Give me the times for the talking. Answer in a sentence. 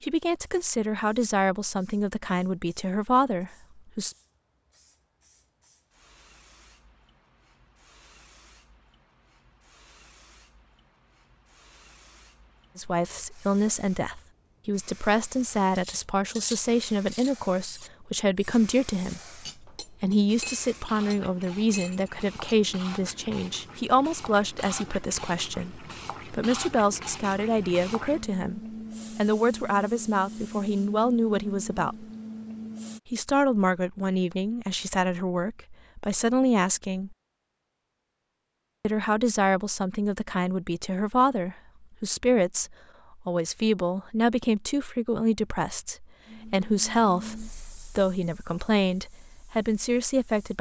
You can hear the talking from 0.0 to 4.2 s, from 12.8 to 32.0 s, from 33.0 to 37.1 s and from 38.8 to 50.5 s.